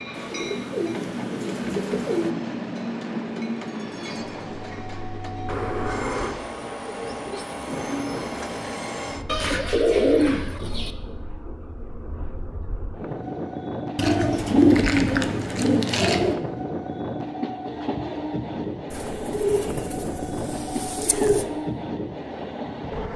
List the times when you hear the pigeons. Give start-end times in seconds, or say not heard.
0.1-2.4, 5.5-7.5, 9.2-10.9, 13.9-16.4, 18.9-21.4.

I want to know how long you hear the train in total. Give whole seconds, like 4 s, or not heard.
23 s.